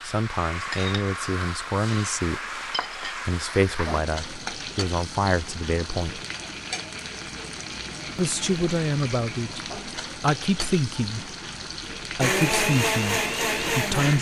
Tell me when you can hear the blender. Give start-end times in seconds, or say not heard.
12.2-14.1.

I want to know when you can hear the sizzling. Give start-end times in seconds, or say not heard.
0.0-14.1.